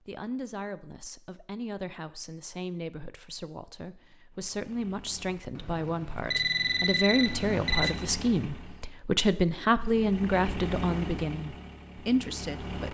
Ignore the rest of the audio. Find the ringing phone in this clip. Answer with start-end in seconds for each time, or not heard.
6.3-7.9.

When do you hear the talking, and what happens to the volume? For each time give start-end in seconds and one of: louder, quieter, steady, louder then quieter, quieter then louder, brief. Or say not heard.
0.1-12.8 louder.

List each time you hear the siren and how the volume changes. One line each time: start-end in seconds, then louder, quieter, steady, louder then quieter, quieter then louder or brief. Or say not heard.
not heard.